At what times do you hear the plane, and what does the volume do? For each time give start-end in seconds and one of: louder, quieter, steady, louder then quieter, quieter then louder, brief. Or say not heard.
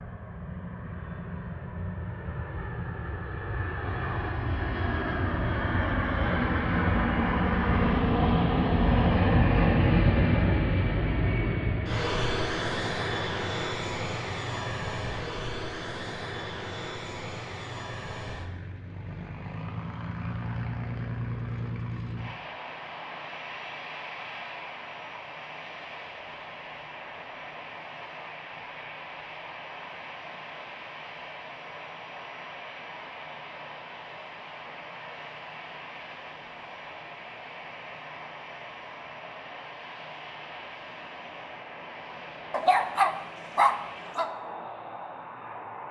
0.0-45.8 quieter.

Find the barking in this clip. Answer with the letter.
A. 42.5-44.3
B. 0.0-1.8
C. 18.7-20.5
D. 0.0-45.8
A.